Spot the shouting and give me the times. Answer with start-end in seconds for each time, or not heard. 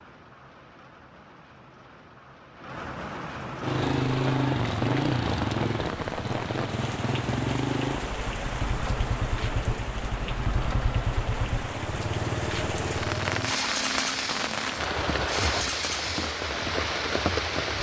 not heard.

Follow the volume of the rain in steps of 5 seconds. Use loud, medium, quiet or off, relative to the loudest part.
medium, medium, loud, loud.